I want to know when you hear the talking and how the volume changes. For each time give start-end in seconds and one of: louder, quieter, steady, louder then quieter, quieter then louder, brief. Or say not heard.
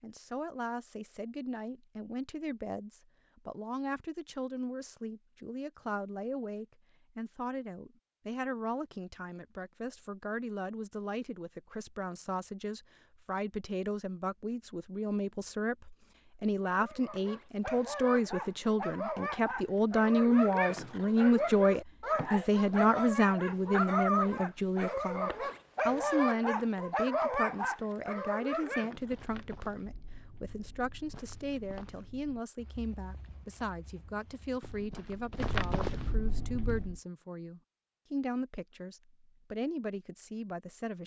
0.0-41.0 louder then quieter.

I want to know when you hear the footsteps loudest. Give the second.
36 s.